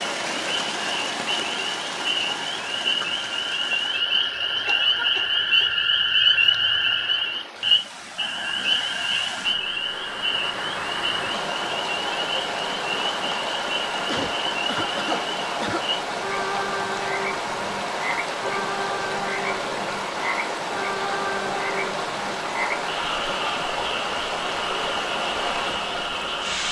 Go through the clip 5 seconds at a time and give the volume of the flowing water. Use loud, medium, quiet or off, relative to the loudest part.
loud, medium, loud, loud, loud, loud.